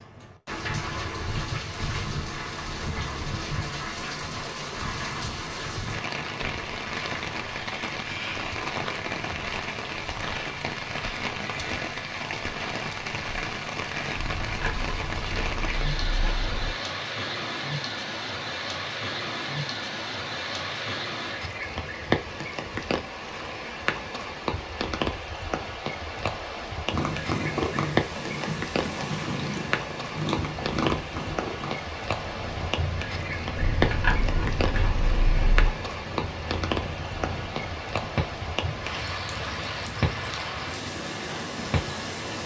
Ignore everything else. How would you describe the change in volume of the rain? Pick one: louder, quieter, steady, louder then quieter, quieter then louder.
steady.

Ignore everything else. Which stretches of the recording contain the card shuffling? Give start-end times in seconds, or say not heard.
14.2-16.8, 33.5-35.8.